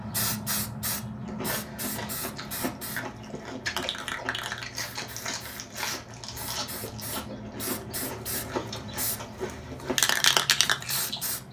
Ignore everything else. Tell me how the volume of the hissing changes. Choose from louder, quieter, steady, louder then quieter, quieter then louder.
quieter then louder.